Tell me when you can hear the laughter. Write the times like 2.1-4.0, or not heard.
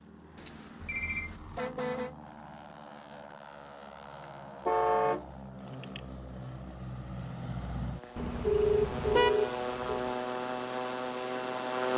not heard.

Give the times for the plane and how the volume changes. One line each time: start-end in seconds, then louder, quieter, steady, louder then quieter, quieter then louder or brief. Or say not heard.
0.0-11.9 louder.